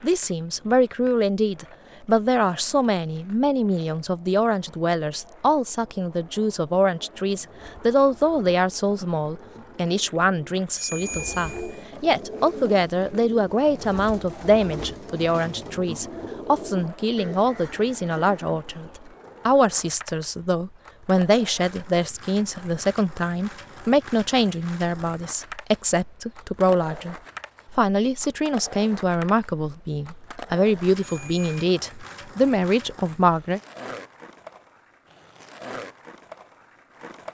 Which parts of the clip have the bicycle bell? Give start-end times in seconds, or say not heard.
10.8-11.8, 31.0-31.6.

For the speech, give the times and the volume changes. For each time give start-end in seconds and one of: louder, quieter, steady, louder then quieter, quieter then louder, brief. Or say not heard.
0.0-33.6 steady.